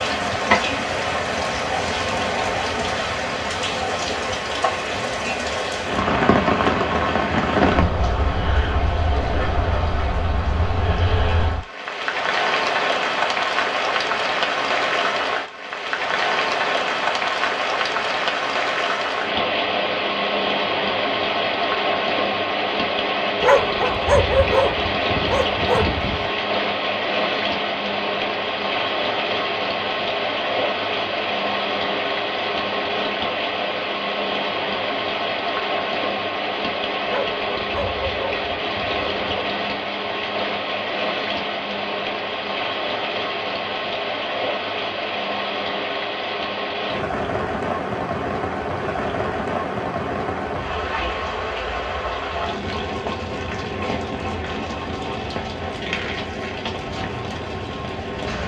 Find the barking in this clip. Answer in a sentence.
The barking can be heard from 23.4 to 26.3 s and from 37.0 to 39.5 s.